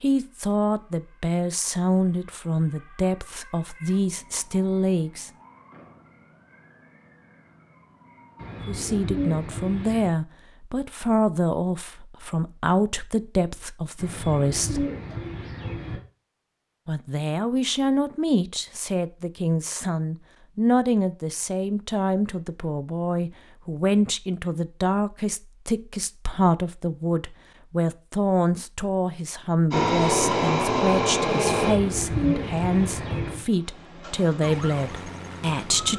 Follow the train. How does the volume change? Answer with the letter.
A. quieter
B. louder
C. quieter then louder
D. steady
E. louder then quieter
A.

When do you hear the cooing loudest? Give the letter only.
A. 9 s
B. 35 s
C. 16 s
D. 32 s
D.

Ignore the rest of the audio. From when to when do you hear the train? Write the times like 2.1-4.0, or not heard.
29.7-35.9.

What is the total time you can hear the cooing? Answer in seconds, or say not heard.
6 s.